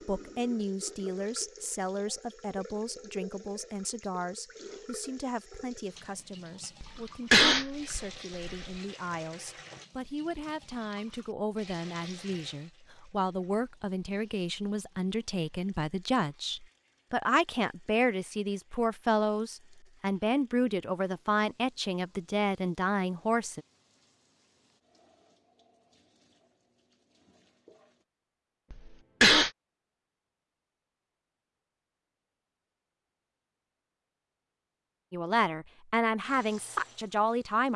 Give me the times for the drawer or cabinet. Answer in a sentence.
The drawer or cabinet can't be heard in this clip.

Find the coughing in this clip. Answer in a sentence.
You can hear the coughing from 6.8 to 8.7 s and from 28.7 to 29.5 s.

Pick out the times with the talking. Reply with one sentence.
You can hear the talking from 0.1 to 23.6 s and from 35.1 to 37.7 s.